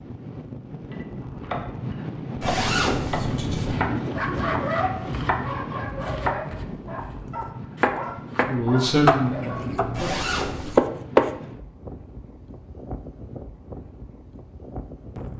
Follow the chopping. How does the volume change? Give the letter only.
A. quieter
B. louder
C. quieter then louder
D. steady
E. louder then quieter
B.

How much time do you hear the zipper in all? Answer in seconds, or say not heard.
2 s.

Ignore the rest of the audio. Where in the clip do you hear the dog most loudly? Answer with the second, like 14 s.
5 s.